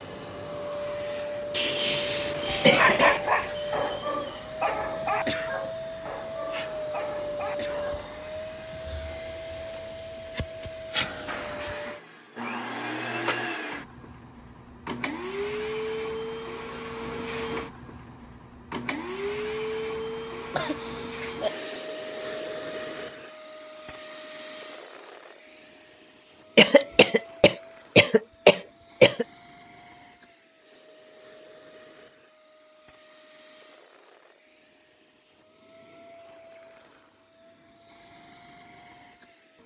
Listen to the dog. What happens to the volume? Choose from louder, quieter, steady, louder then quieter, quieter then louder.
quieter.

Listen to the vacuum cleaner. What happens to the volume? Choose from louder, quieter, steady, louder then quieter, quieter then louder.
quieter.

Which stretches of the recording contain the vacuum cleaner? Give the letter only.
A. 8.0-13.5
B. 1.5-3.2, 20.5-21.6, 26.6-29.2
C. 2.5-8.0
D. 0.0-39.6
D.